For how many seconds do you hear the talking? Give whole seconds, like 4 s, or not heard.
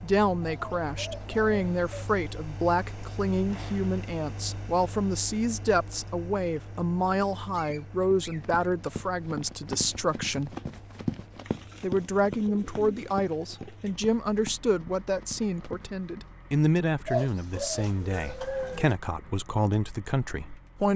20 s.